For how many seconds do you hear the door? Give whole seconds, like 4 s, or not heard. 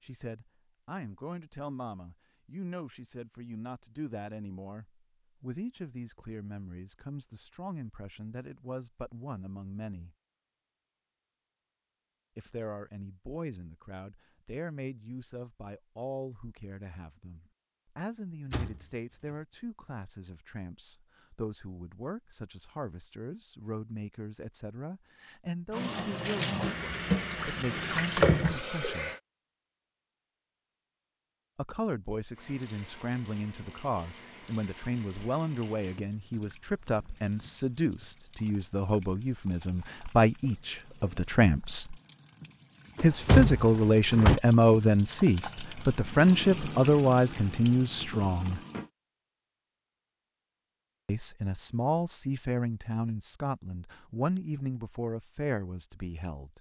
2 s.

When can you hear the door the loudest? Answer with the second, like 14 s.
43 s.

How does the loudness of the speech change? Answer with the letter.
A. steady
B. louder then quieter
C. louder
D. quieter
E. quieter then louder
C.